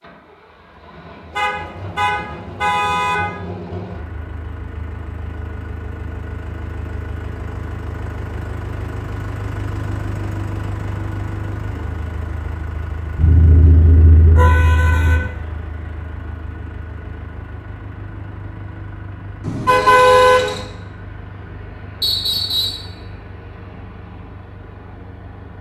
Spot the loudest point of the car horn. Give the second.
20 s.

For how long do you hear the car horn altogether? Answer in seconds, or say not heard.
5 s.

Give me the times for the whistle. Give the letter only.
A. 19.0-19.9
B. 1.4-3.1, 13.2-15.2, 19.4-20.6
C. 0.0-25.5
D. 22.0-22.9
D.